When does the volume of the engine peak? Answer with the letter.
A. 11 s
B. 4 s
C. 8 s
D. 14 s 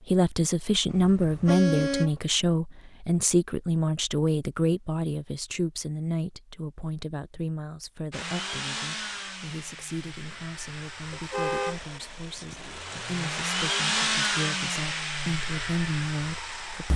D.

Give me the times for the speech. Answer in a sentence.
The speech can be heard from 0.1 to 16.9 s.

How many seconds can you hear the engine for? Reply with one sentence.
The engine can be heard for 9 seconds in total.